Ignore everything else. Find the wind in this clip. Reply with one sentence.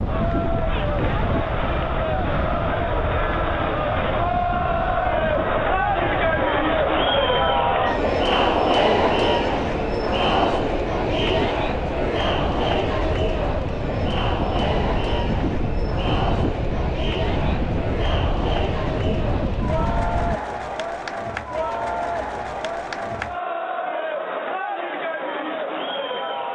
You can hear the wind from 0.0 to 20.4 s.